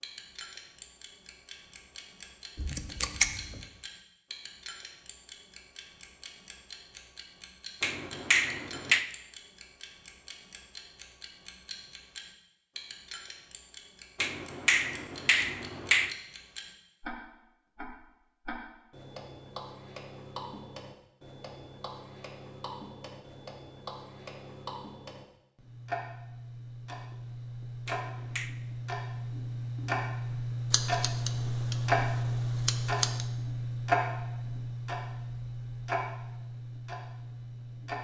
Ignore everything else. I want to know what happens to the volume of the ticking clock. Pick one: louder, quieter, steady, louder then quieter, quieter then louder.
louder.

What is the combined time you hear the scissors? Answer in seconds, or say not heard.
4 s.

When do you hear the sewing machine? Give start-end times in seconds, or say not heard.
not heard.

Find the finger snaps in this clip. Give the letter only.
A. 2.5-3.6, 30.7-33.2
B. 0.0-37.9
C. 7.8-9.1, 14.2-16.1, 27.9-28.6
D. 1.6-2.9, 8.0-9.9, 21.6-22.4
C.